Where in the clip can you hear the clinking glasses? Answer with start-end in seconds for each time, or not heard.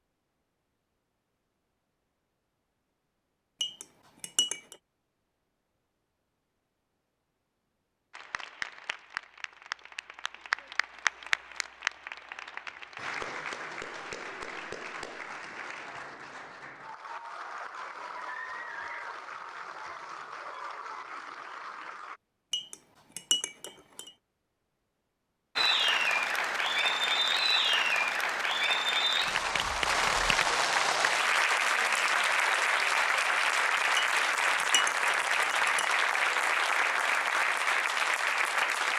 3.6-4.8, 22.5-24.1, 34.0-36.0.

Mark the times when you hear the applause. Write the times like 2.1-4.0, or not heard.
8.1-22.2, 25.6-38.9.